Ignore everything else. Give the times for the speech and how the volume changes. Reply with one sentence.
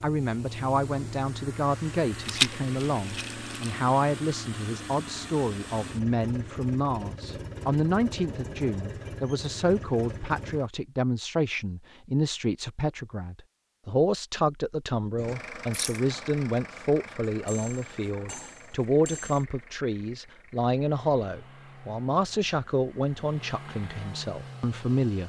The speech can be heard from 0.0 to 25.2 s, at a steady volume.